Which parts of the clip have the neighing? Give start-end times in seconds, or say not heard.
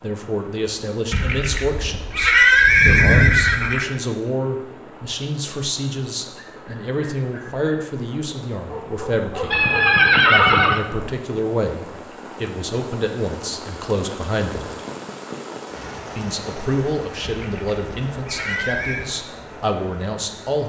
1.1-3.9, 9.5-10.8, 17.2-19.1.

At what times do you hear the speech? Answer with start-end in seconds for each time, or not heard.
0.0-9.7, 10.3-14.7, 16.1-20.6.